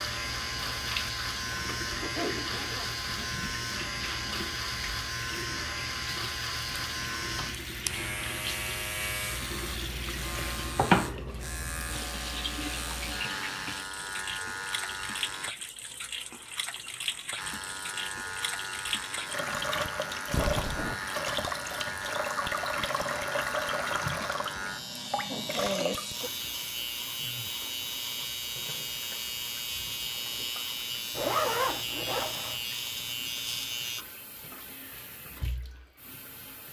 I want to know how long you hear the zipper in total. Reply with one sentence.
You can hear the zipper for 4 seconds altogether.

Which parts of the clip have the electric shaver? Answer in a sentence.
You can hear the electric shaver from 0.0 to 15.5 s and from 17.4 to 34.0 s.